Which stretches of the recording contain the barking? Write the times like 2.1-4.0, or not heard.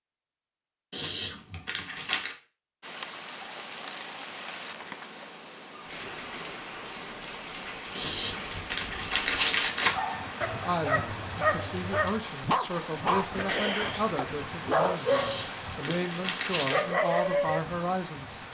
9.9-17.6.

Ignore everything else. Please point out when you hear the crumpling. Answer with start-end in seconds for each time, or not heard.
0.9-2.4, 8.0-9.9, 15.1-16.9.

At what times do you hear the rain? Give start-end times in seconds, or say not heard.
2.8-18.4.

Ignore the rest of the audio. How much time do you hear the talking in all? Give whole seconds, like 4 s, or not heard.
8 s.